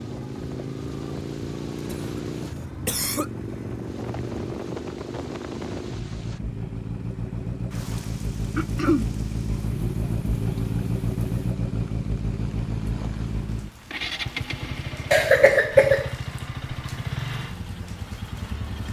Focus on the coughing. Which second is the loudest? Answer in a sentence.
The volume of the coughing peaks at 16 seconds.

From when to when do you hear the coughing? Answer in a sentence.
You can hear the coughing from 1.9 to 3.3 s, from 8.6 to 9.1 s and from 15.1 to 16.1 s.